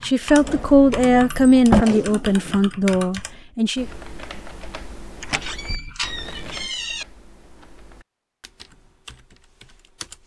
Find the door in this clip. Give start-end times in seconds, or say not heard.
0.4-1.9, 5.2-7.0.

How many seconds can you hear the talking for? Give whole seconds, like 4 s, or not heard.
4 s.